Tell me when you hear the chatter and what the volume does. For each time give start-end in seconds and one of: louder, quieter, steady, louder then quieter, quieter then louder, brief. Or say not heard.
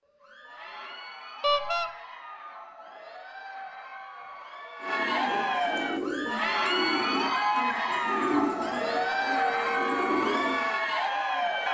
0.1-11.6 louder.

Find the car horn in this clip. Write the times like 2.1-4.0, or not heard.
1.4-1.9, 8.8-9.9.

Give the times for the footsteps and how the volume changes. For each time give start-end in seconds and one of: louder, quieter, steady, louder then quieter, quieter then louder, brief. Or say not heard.
not heard.